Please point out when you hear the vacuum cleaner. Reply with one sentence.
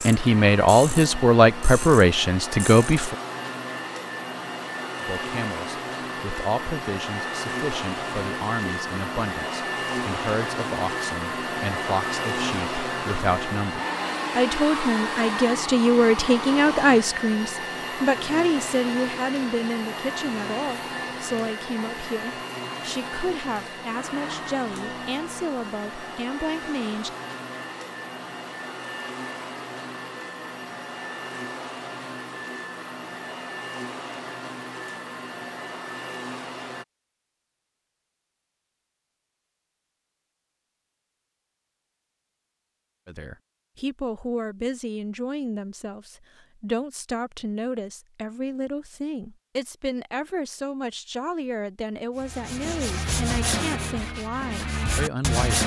You can hear the vacuum cleaner from 0.0 to 36.9 s.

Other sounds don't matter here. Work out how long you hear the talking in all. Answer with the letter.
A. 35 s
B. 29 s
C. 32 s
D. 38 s
D.